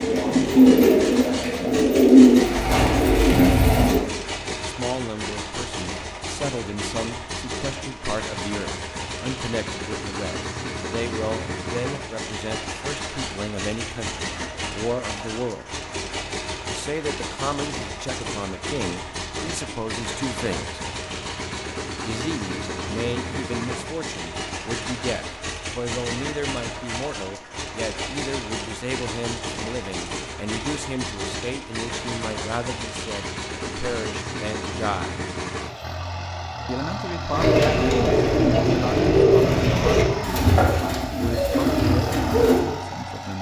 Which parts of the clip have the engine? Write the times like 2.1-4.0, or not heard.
0.0-43.3.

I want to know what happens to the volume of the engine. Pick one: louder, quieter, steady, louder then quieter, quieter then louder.
steady.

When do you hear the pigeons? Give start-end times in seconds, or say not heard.
0.0-4.0, 37.3-42.6.